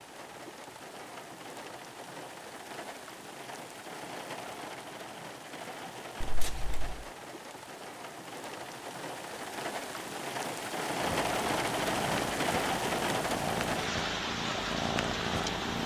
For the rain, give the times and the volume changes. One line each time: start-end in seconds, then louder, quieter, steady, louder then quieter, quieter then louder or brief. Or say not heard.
0.0-15.8 louder.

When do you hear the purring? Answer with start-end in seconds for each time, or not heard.
11.0-15.8.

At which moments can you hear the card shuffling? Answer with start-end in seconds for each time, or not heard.
6.2-7.0.